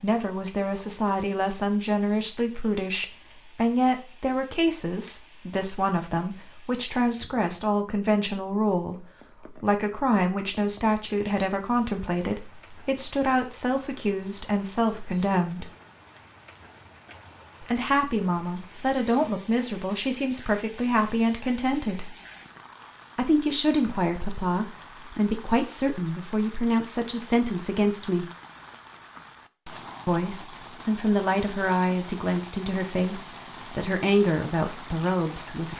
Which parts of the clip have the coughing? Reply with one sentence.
You can't hear the coughing here.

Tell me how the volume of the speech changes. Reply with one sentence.
The loudness of the speech stays about the same.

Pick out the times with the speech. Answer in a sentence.
You can hear the speech from 0.0 to 15.7 s, from 17.6 to 22.1 s, from 23.1 to 28.2 s and from 30.1 to 35.7 s.